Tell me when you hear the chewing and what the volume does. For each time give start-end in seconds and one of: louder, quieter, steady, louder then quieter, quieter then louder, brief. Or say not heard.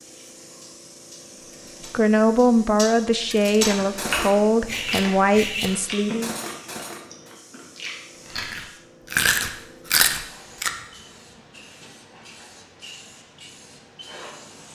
3.6-10.7 quieter then louder.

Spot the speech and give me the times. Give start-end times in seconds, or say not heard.
1.9-6.3.